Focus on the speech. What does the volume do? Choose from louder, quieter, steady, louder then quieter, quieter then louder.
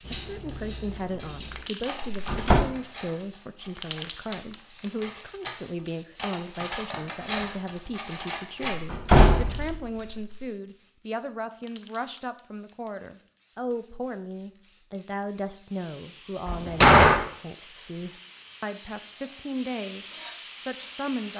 steady.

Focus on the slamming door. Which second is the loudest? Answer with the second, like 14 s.
17 s.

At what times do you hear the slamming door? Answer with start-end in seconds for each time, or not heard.
2.0-2.6, 8.7-10.2, 16.4-17.2.